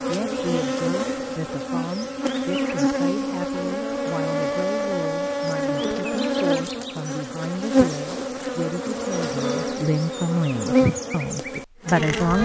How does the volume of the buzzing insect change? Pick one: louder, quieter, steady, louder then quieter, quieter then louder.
steady.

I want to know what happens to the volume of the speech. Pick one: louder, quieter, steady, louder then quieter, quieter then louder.
louder.